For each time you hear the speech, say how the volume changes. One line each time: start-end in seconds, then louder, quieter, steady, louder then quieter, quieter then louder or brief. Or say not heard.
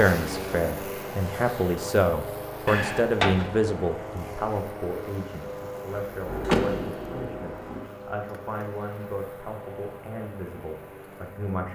0.0-11.7 quieter.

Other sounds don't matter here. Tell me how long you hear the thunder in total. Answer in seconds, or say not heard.
2 s.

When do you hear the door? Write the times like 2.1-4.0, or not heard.
2.6-3.5, 6.5-7.3.